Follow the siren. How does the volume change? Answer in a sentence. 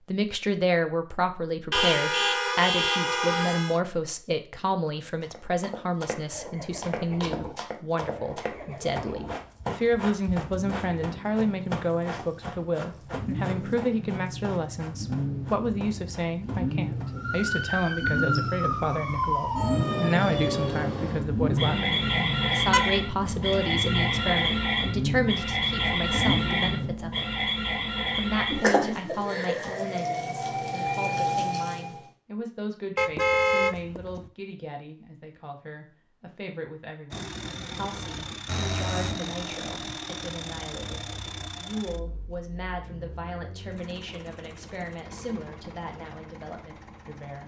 The loudness of the siren stays about the same.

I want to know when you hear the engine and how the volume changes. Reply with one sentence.
You can hear the engine from 6.3 to 26.9 s, getting louder; and from 37.1 to 47.4 s, getting quieter.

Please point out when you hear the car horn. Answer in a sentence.
You can hear the car horn from 1.7 to 3.8 s, from 22.7 to 23.8 s and from 33.0 to 34.3 s.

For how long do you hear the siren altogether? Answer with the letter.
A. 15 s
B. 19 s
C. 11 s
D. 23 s
A.